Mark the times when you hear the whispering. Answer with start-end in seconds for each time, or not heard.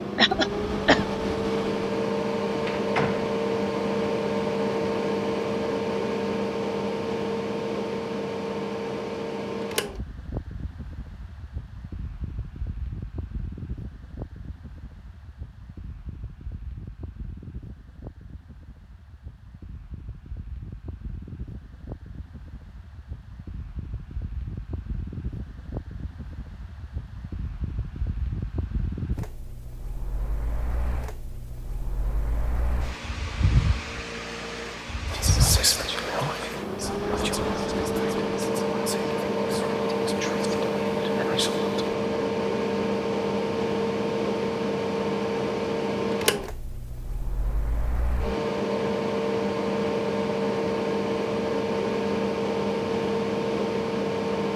35.1-42.0.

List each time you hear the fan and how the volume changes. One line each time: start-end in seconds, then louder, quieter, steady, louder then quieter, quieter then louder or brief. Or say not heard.
0.0-54.5 quieter then louder.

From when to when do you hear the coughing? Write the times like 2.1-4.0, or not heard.
0.1-1.1.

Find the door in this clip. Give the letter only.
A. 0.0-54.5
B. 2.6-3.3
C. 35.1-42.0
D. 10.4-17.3
B.